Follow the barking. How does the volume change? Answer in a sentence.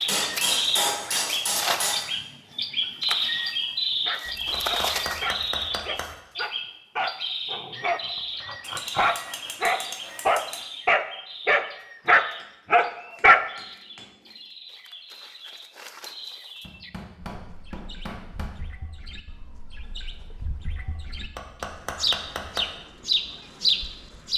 The volume of the barking goes up.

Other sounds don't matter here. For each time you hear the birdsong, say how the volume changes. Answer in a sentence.
You can hear the birdsong from 0.0 to 24.3 s, getting quieter then louder.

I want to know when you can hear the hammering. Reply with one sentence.
You can hear the hammering from 0.1 to 2.0 s, from 4.2 to 6.0 s, from 8.6 to 10.7 s, from 12.4 to 14.3 s, from 16.6 to 18.6 s and from 21.1 to 22.6 s.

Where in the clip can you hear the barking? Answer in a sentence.
You can hear the barking from 4.0 to 13.4 s.